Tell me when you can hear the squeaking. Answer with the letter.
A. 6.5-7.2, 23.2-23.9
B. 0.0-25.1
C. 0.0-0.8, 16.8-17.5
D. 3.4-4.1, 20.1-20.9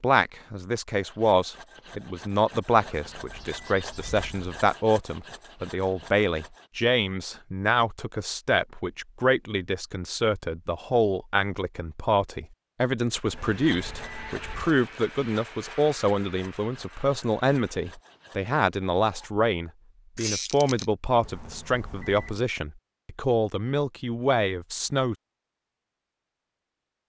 D.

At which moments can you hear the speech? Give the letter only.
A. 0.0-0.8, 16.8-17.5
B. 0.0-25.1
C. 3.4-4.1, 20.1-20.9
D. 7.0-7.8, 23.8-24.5
B.